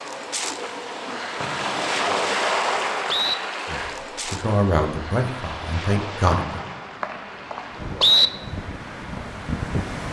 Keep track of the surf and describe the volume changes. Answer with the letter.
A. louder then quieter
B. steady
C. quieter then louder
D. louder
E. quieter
E.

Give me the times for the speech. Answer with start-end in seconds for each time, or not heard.
3.6-6.6.